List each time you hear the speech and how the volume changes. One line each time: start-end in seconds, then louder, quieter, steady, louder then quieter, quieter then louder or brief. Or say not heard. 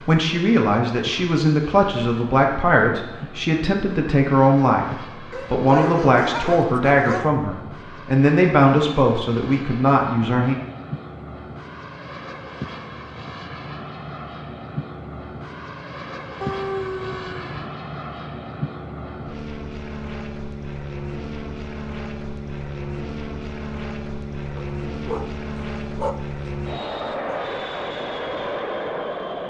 0.0-10.6 steady.